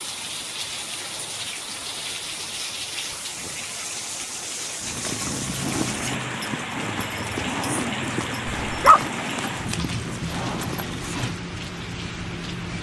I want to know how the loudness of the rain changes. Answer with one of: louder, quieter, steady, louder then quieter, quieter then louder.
steady.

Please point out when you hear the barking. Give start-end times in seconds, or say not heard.
8.4-9.1.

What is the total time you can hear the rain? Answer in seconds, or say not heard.
13 s.